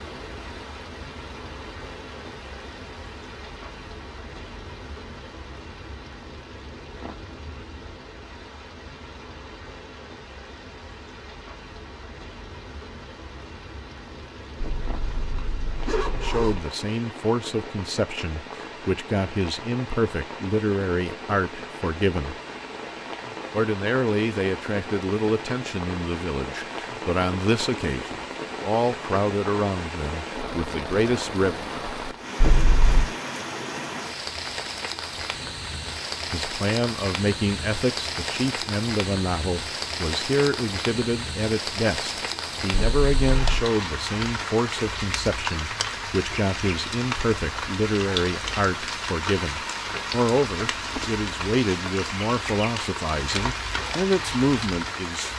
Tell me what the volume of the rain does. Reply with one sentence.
The loudness of the rain goes up.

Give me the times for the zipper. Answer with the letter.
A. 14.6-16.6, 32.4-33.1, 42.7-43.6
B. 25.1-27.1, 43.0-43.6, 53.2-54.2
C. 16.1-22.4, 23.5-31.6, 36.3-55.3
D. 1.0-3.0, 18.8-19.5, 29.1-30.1
A.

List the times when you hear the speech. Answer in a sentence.
The speech can be heard from 16.1 to 22.4 s, from 23.5 to 31.6 s and from 36.3 to 55.3 s.